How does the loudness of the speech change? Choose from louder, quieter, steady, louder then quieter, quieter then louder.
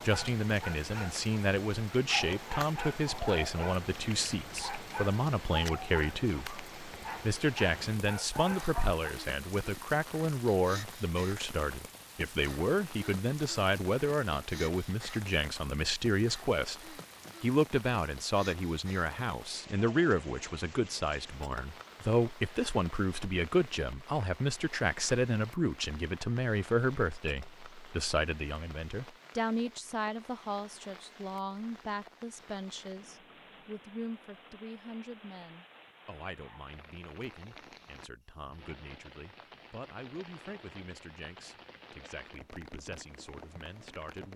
quieter.